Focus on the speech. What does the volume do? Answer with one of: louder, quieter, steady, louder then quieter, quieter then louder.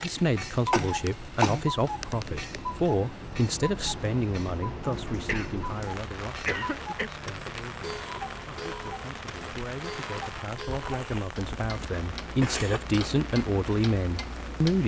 quieter then louder.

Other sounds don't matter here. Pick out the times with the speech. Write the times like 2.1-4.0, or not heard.
0.0-14.8.